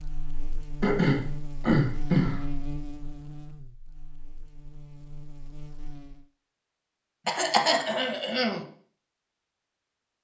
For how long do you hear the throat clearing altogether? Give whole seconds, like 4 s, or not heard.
3 s.